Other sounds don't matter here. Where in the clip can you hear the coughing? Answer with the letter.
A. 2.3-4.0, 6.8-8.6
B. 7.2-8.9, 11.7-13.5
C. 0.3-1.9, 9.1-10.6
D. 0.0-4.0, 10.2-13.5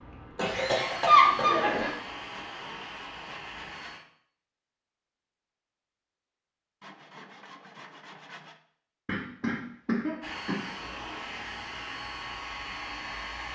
C.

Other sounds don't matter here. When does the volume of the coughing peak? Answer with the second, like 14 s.
1 s.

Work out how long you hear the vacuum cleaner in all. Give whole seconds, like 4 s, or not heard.
7 s.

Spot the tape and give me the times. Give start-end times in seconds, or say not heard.
not heard.